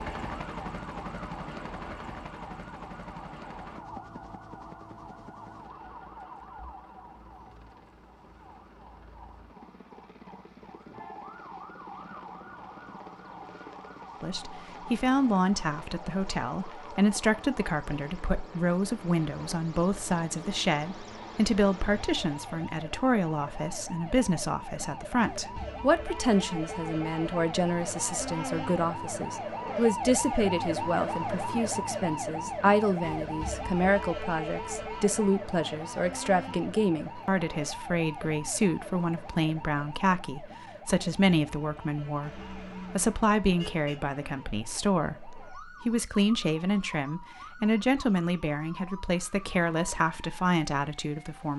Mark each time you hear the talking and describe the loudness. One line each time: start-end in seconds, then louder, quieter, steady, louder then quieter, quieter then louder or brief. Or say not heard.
14.2-51.5 steady.